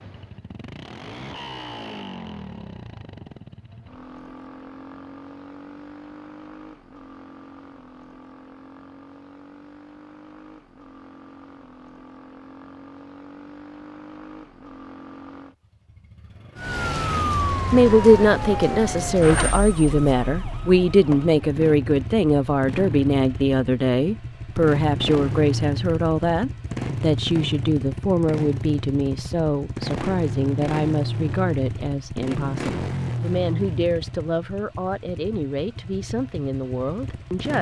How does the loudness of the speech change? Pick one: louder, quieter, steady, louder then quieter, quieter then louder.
quieter.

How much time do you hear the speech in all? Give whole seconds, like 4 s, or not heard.
20 s.